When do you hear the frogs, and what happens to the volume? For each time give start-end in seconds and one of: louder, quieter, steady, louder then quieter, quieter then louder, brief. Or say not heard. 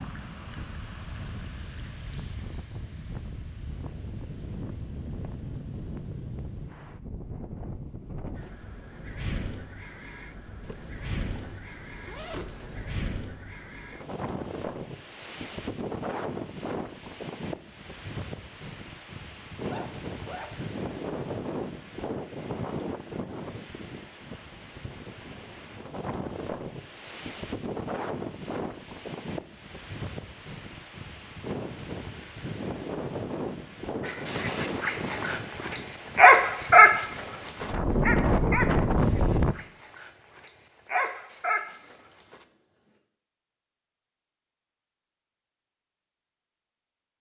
not heard.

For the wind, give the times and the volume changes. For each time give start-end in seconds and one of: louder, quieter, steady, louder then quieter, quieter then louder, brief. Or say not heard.
0.0-39.5 louder.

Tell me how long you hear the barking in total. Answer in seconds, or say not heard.
8 s.